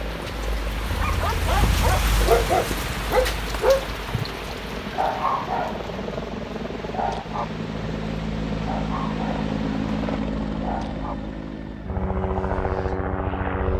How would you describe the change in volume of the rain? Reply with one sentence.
The loudness of the rain goes down.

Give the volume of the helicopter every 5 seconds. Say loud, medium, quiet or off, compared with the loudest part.
medium, loud, loud.